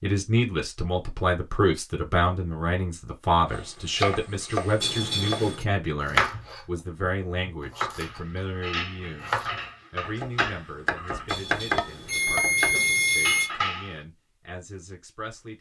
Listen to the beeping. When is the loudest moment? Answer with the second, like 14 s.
13 s.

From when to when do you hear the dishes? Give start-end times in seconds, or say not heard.
8.0-13.9.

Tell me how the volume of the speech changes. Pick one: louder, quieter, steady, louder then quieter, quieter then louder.
quieter.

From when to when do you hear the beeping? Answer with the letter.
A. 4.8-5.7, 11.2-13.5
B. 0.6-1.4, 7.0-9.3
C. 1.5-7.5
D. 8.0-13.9
A.